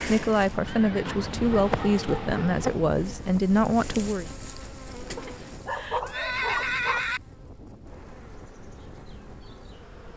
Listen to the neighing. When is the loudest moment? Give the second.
7 s.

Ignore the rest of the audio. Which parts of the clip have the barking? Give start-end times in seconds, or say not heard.
1.1-2.8, 5.2-7.1.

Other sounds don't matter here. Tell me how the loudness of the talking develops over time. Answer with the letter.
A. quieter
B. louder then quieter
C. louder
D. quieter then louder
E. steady
E.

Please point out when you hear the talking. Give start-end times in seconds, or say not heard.
0.0-4.2.